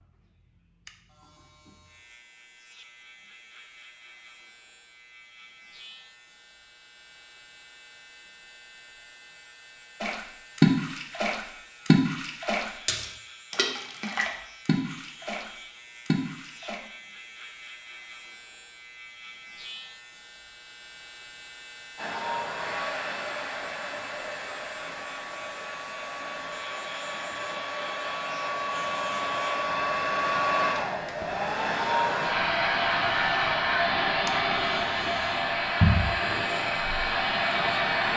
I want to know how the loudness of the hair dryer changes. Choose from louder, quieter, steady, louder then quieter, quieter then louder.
louder.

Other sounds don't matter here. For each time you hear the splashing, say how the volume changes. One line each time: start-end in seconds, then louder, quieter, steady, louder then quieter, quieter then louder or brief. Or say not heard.
10.0-16.8 quieter.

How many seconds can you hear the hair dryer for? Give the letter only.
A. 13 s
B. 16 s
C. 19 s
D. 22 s
B.